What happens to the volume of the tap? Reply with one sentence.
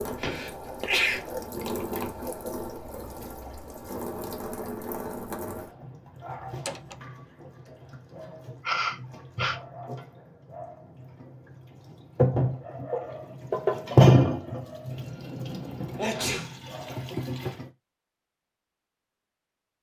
The loudness of the tap goes down, then up.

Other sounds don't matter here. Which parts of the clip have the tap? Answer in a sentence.
You can hear the tap from 0.0 to 17.6 s.